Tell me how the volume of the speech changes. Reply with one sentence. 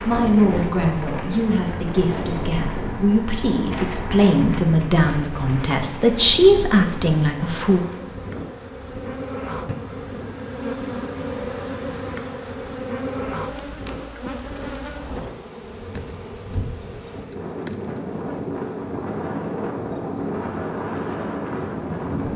The loudness of the speech goes up.